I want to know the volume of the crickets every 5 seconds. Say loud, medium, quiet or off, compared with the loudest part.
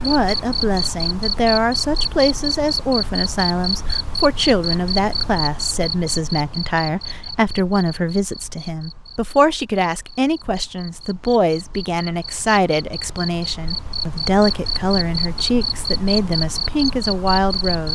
loud, medium, medium, loud.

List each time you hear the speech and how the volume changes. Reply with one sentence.
You can hear the speech from 0.0 to 17.9 s, at a steady volume.